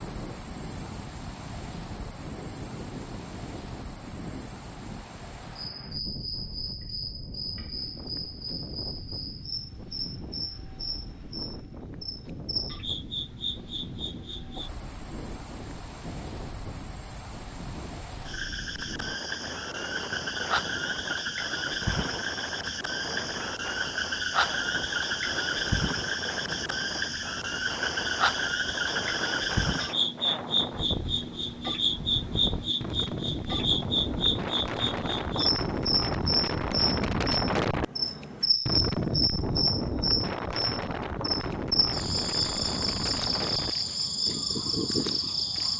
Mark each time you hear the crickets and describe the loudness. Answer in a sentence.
The crickets can be heard from 0.0 to 45.7 s, getting louder.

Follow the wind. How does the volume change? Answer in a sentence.
The volume of the wind goes up.